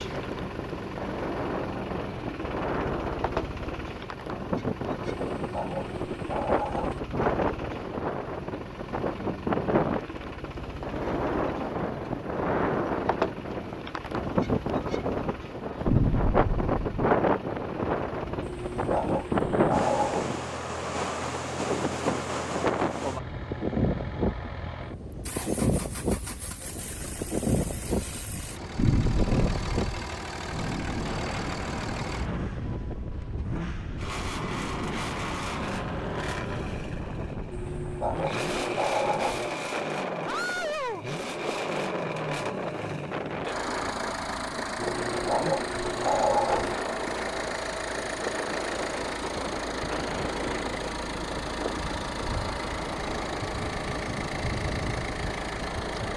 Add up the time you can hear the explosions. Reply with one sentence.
The explosions can be heard for 2 seconds in total.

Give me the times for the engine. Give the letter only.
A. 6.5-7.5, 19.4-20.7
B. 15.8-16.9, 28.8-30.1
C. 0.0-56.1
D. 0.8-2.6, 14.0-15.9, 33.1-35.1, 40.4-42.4
C.